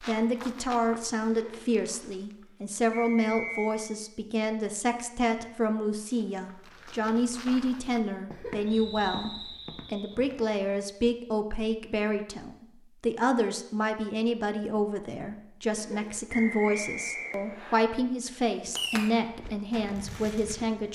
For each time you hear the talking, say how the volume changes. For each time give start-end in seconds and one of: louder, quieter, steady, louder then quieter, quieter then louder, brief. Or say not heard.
0.1-20.8 steady.